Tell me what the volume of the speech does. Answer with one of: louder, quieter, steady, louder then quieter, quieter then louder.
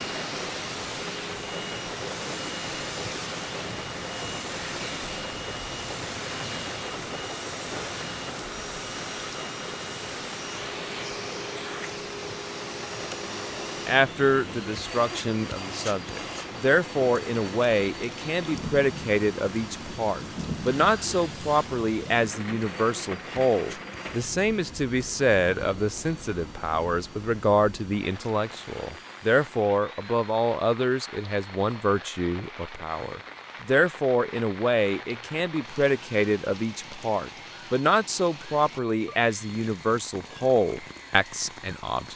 steady.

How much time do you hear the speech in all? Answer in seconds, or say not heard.
29 s.